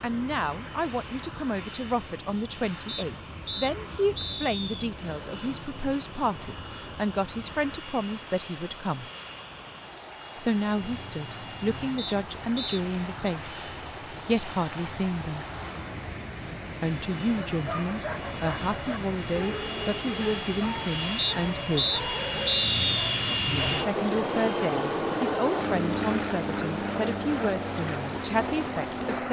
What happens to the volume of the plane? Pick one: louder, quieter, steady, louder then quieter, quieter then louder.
louder.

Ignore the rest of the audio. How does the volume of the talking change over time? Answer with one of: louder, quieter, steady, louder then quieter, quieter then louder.
steady.